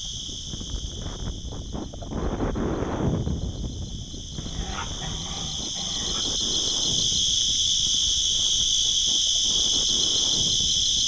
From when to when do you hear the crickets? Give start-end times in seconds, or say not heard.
0.0-11.0.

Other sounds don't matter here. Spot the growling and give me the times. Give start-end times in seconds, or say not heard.
4.3-6.2.